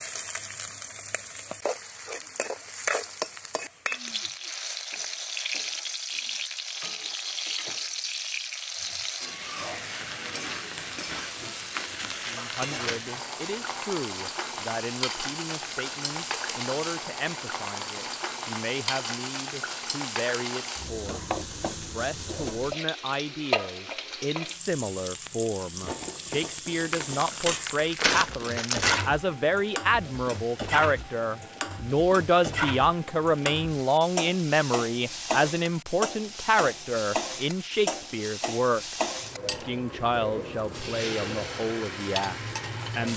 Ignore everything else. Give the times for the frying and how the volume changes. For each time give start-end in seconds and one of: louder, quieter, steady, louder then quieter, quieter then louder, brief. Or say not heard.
0.0-43.1 steady.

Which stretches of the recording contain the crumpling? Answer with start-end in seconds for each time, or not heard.
11.8-13.1, 26.9-29.1.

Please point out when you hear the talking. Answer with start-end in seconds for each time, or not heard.
12.2-43.1.